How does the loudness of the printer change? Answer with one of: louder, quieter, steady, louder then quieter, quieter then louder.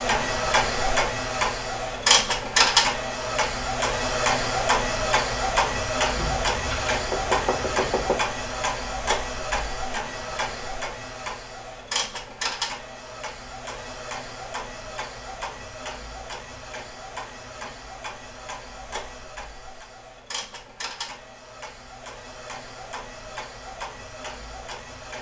quieter.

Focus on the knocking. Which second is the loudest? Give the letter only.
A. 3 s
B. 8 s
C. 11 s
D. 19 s
B.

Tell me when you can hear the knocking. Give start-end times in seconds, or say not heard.
6.2-8.2.